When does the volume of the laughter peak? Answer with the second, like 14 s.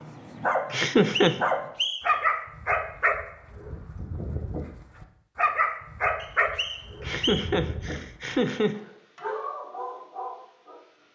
1 s.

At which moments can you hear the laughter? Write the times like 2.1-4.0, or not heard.
0.7-1.4, 7.0-8.8.